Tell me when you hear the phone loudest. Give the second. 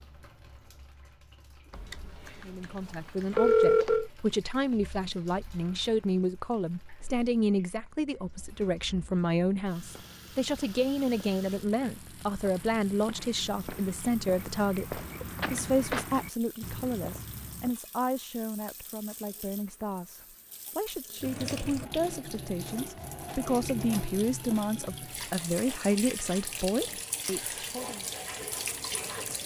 4 s.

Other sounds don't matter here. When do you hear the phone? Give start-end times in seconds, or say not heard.
1.7-4.1, 15.3-15.8.